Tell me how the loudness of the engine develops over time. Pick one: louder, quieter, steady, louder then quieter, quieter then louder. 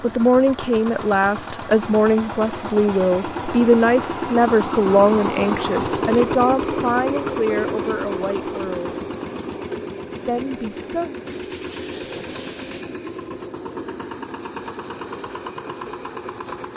louder then quieter.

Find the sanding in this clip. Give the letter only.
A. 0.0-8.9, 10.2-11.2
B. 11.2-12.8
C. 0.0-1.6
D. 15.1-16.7
B.